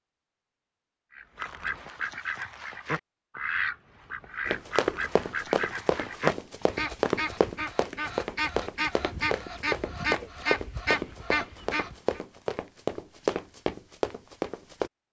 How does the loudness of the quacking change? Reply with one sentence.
The loudness of the quacking stays about the same.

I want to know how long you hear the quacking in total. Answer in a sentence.
You can hear the quacking for 11 seconds altogether.